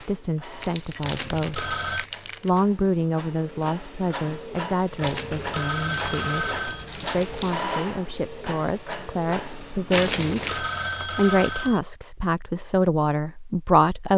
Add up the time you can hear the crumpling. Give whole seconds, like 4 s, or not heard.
5 s.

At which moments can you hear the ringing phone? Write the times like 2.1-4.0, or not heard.
1.0-2.0, 5.0-6.8, 9.9-11.8.